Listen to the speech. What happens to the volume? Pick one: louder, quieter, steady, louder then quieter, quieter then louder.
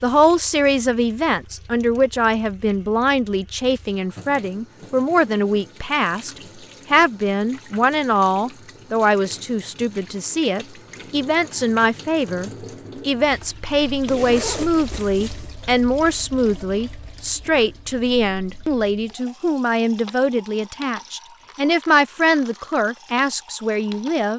steady.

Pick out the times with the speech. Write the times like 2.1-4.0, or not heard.
0.0-24.3.